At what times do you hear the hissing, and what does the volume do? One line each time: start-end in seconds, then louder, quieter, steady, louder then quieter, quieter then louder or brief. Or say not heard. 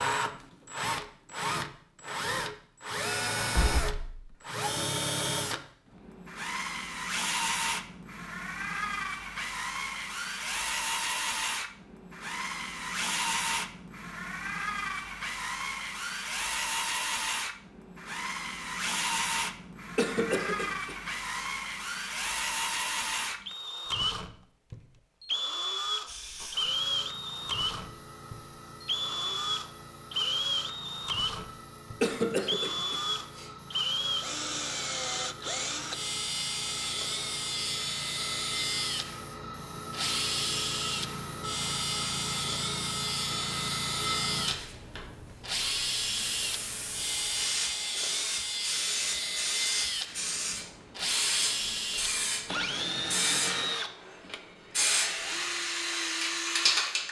26.1-57.0 louder.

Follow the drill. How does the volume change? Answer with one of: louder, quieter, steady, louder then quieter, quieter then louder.
steady.